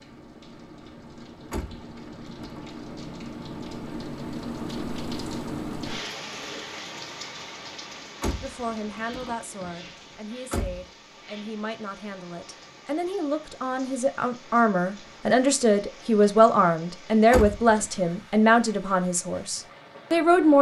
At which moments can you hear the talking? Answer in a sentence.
The talking can be heard from 8.4 to 20.5 s.